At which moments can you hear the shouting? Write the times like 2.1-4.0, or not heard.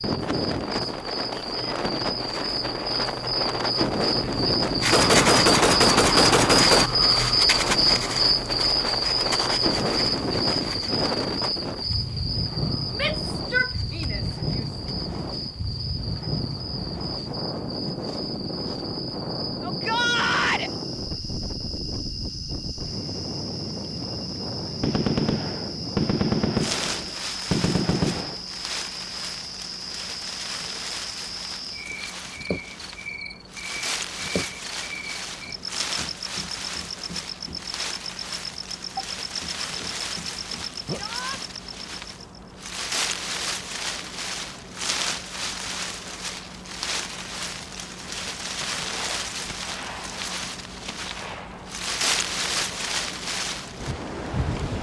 12.9-14.7, 19.6-20.7, 40.9-41.4.